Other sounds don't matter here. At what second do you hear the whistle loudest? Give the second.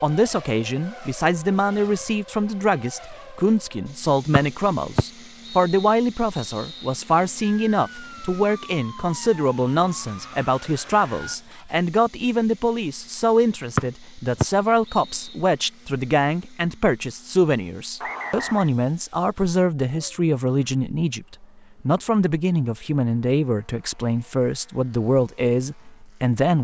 14 s.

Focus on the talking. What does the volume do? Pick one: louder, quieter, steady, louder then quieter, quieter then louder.
steady.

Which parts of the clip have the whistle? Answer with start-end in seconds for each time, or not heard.
4.3-7.0, 13.8-15.4, 18.0-18.7.